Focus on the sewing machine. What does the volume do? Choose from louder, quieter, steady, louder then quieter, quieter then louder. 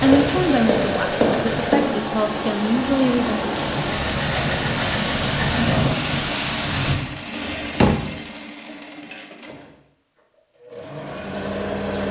quieter.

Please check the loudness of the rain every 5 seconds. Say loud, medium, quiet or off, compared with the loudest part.
medium, loud, off.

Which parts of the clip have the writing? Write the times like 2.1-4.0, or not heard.
0.0-1.9.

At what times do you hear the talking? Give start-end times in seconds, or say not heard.
0.0-3.5.